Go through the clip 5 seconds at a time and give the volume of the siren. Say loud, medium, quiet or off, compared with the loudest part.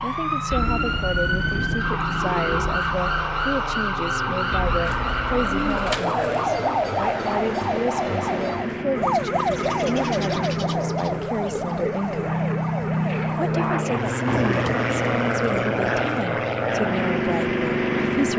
loud, loud, medium, off.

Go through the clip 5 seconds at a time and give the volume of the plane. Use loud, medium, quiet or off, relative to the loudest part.
medium, medium, loud, loud.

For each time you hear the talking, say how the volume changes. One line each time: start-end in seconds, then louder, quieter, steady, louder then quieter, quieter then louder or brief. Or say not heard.
0.0-12.4 steady
13.3-18.3 steady.